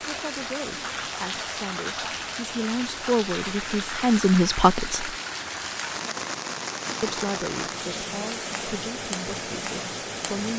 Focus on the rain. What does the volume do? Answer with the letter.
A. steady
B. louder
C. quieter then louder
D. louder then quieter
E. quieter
A.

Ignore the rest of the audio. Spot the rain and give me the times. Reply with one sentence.
The rain can be heard from 0.0 to 10.5 s.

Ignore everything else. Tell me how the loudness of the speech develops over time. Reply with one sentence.
The loudness of the speech goes up, then down.